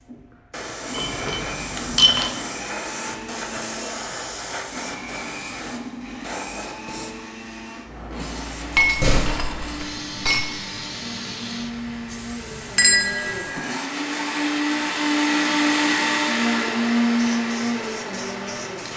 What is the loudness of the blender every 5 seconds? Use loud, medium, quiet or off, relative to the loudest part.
quiet, quiet, medium, loud.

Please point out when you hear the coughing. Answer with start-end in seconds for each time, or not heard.
not heard.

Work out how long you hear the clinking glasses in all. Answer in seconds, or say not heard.
4 s.